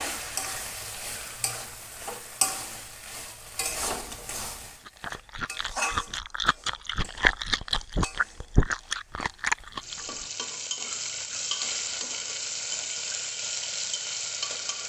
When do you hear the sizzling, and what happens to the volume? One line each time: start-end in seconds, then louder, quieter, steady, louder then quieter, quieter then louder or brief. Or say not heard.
0.0-14.8 quieter then louder.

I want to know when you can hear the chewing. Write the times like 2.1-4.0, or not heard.
4.8-10.2.